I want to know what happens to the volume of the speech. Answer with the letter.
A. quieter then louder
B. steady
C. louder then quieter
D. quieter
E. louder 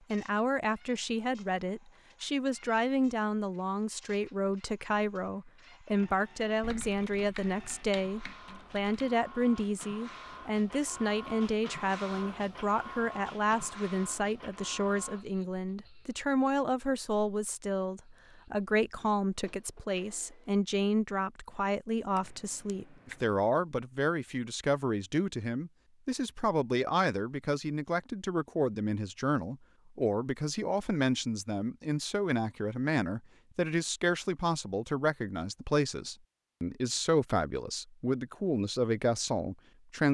B.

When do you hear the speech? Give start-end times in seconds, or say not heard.
0.1-40.1.